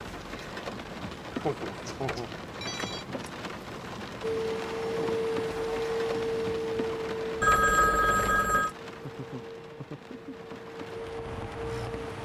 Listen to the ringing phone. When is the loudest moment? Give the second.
8 s.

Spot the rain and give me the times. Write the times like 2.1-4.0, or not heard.
0.0-12.2.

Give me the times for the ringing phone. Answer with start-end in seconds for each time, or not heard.
1.9-3.0, 7.4-8.7.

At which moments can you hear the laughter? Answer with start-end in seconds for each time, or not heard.
1.3-2.3, 8.8-10.3.